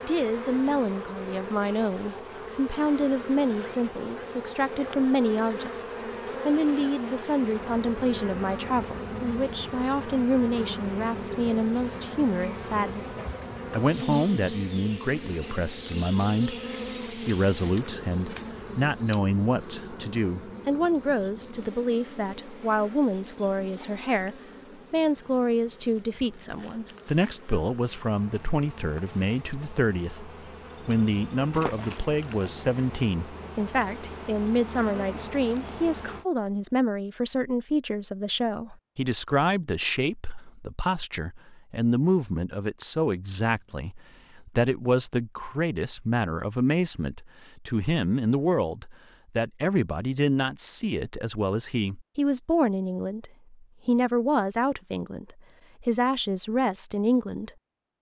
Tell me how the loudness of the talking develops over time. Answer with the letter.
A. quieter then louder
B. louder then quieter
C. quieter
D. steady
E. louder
D.